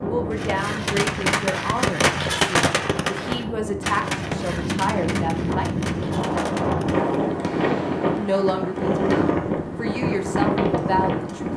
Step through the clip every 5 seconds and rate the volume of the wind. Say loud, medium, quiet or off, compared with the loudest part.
medium, loud, loud.